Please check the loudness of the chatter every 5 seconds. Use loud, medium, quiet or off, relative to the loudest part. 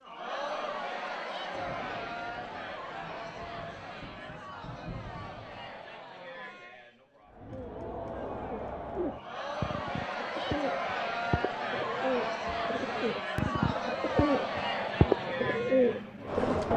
medium, medium, loud, loud.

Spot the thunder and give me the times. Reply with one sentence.
The thunder can be heard from 1.5 to 6.0 s.